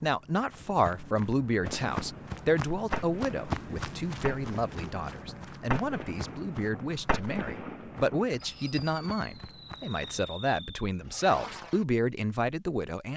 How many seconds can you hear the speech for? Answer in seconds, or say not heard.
13 s.